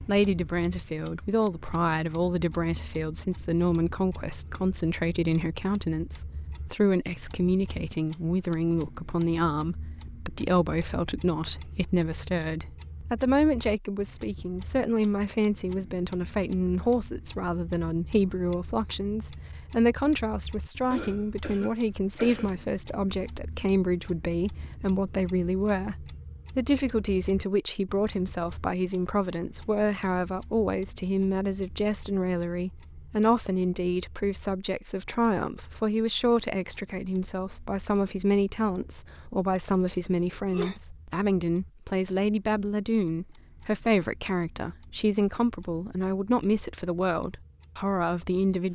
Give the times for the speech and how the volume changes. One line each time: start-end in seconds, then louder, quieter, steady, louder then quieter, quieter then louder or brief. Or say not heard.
0.1-48.7 steady.